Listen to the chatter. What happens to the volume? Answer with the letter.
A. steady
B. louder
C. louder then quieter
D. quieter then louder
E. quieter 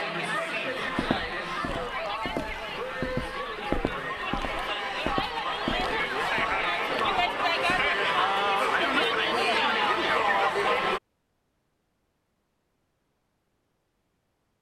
B.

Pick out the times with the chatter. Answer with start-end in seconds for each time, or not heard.
0.0-11.0.